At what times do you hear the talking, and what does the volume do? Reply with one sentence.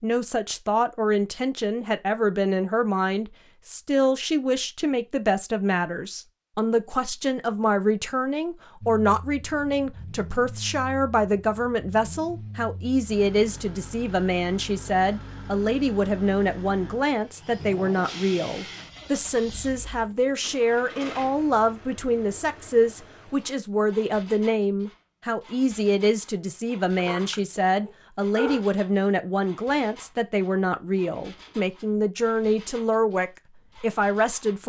You can hear the talking from 0.0 to 34.6 s, at a steady volume.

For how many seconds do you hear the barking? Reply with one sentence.
You can hear the barking for 2 seconds altogether.